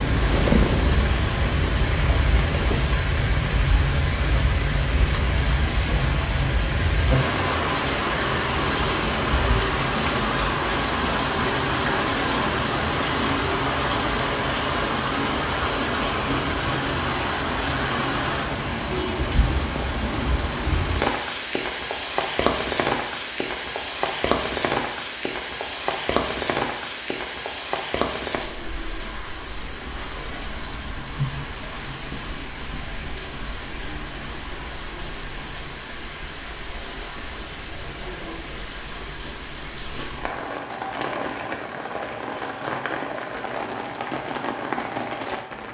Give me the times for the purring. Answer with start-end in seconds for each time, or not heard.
0.0-2.9.